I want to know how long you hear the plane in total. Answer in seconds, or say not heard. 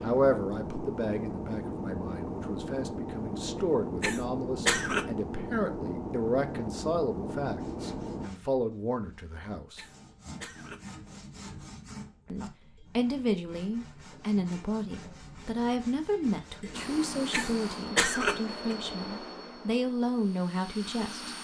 13 s.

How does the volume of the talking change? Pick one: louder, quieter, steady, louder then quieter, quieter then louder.
steady.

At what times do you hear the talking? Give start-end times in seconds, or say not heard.
0.0-9.8, 12.3-21.4.